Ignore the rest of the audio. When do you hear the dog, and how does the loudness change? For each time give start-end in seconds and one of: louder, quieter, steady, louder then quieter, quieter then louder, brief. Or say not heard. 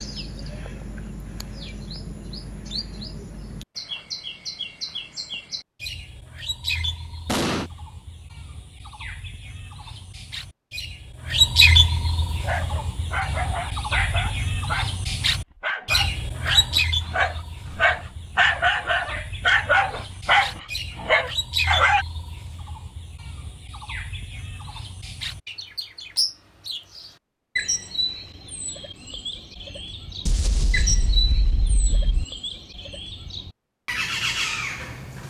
12.4-22.1 louder.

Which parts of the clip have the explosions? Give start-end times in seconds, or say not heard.
7.2-7.7, 30.2-32.2.